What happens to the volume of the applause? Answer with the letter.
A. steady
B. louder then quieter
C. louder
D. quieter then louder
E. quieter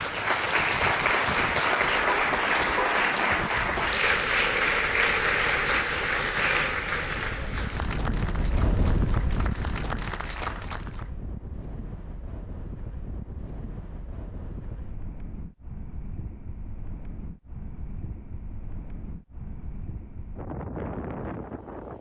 E.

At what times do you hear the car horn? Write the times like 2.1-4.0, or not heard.
2.0-3.5.